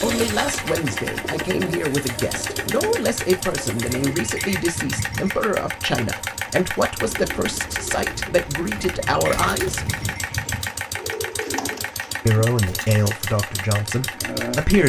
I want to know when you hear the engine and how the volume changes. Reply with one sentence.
You can hear the engine from 0.0 to 14.8 s, at a steady volume.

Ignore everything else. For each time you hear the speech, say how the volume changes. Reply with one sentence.
You can hear the speech from 0.0 to 9.9 s, at a steady volume; and briefly from 12.2 to 14.8 s.